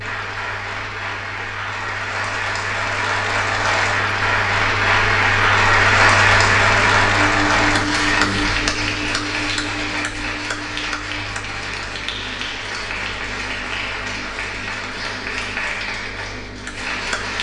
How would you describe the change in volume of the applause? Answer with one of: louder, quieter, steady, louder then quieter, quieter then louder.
louder then quieter.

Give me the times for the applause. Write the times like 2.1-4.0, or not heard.
0.0-17.3.